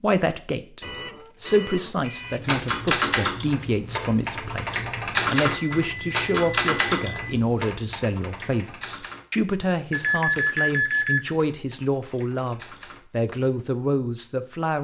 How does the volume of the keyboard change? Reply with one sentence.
The loudness of the keyboard goes down.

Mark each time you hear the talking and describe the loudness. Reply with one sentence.
The talking can be heard from 0.0 to 14.8 s, at a steady volume.